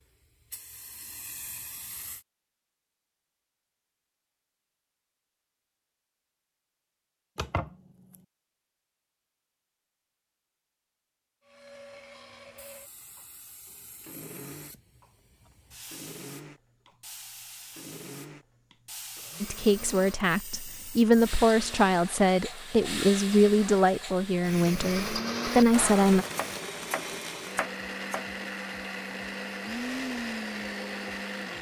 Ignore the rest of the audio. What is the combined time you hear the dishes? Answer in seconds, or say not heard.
not heard.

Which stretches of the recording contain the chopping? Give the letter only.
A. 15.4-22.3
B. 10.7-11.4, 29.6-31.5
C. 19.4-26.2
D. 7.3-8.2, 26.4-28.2
D.